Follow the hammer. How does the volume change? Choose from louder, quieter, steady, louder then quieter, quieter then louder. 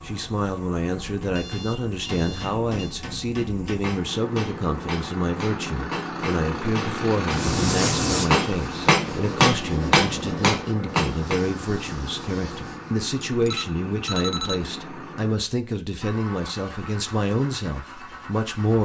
louder.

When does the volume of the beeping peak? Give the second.
14 s.